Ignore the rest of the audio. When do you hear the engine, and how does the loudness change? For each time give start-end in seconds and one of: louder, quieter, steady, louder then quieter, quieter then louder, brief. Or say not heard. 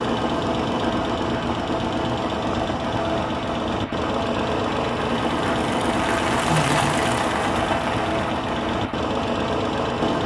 0.0-10.2 steady.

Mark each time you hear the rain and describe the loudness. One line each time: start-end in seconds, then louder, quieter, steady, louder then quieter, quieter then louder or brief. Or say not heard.
0.0-10.2 louder then quieter.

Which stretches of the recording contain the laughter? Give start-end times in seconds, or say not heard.
6.5-7.0.